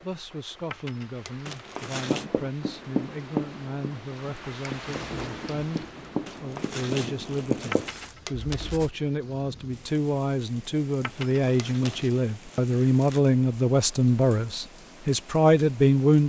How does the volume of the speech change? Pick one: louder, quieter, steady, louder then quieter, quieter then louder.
louder.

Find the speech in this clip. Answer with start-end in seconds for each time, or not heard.
0.0-16.2.